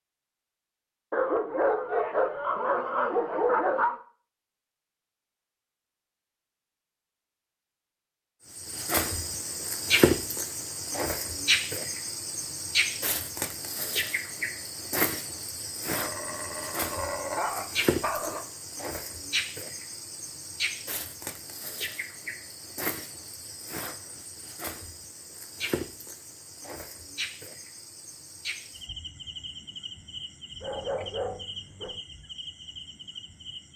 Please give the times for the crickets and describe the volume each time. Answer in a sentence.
The crickets can be heard from 8.6 to 33.7 s, getting quieter.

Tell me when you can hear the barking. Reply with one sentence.
You can hear the barking from 1.1 to 4.0 s, from 15.9 to 18.4 s and from 30.6 to 32.0 s.